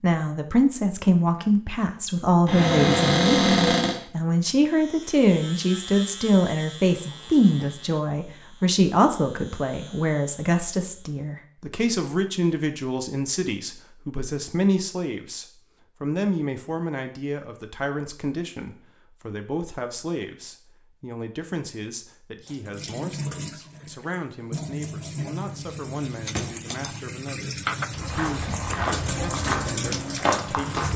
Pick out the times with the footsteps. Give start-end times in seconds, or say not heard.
27.9-30.9.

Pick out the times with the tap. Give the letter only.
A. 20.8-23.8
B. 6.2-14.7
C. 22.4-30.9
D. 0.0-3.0
C.